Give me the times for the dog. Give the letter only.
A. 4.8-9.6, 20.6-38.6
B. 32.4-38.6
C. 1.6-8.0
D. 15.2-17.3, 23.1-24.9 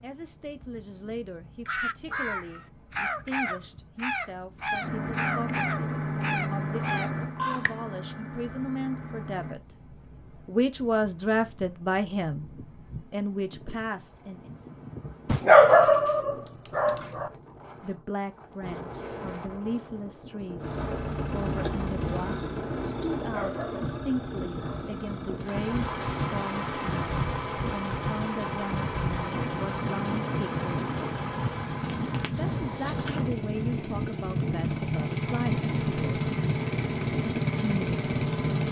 D.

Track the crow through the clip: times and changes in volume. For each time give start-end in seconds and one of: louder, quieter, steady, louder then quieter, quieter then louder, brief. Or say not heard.
1.6-8.0 steady.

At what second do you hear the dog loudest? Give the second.
16 s.